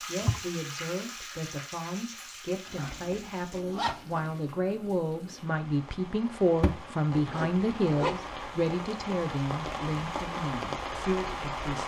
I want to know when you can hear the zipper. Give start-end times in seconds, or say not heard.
2.6-4.2, 7.0-8.2.